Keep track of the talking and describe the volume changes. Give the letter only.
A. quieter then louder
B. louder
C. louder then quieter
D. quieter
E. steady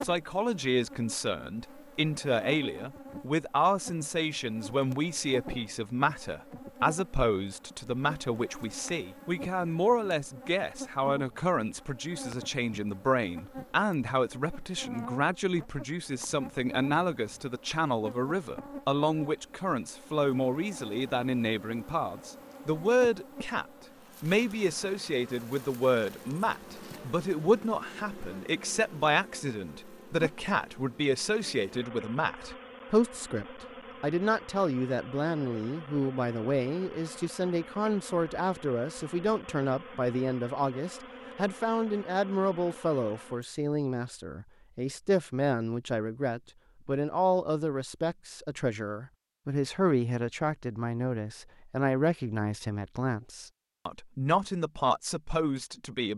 E.